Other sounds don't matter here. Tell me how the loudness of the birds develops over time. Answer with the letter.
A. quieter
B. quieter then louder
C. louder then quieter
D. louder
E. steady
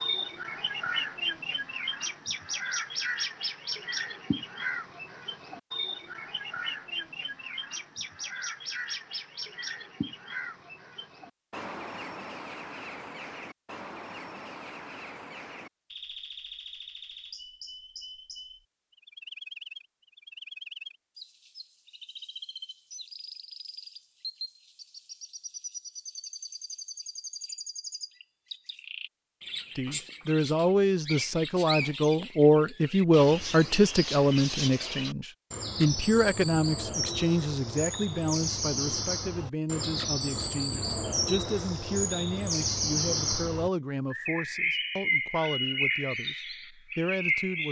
B.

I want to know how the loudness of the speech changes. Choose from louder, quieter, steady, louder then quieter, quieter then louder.
quieter.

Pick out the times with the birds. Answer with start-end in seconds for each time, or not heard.
0.0-47.6.